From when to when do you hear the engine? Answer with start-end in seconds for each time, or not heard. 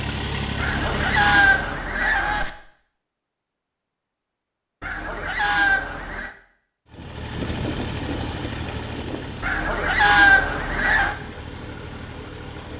0.0-1.9, 6.9-12.7.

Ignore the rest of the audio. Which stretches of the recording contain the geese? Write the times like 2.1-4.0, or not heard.
0.6-2.5, 4.8-6.3, 9.4-11.2.